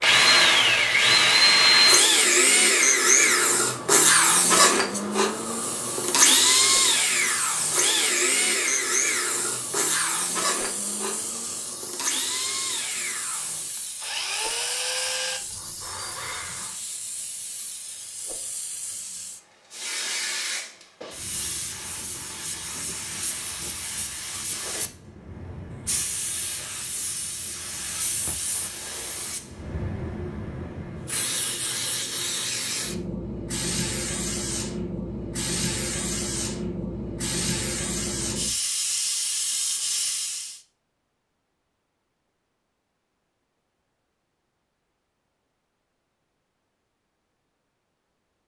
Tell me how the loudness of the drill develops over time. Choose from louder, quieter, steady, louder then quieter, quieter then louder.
quieter.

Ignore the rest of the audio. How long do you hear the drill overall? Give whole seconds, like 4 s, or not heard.
17 s.